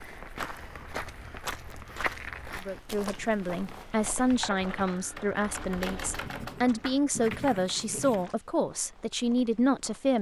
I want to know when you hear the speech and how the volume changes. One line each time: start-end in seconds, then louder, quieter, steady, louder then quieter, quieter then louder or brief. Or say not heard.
2.5-10.1 steady.